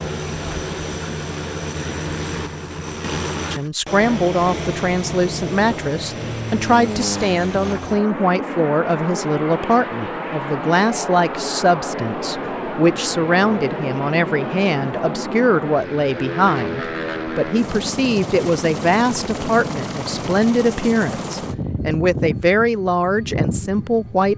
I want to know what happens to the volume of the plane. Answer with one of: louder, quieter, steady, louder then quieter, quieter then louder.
steady.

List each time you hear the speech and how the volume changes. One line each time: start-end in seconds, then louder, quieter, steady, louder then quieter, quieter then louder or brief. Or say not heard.
3.5-24.3 steady.